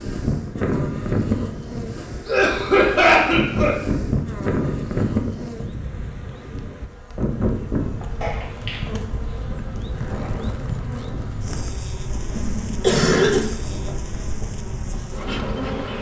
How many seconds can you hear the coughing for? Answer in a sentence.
The coughing can be heard for 3 seconds in total.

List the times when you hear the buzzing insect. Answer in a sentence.
The buzzing insect can be heard from 0.0 to 15.9 s.